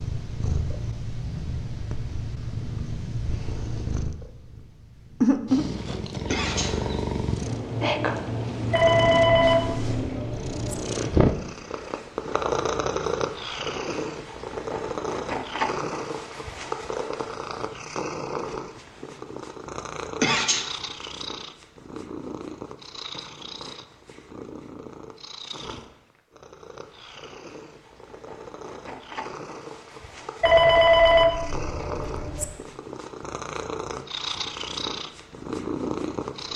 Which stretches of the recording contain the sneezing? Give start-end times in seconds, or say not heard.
6.3-6.8, 20.2-20.7.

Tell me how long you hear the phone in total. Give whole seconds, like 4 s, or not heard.
4 s.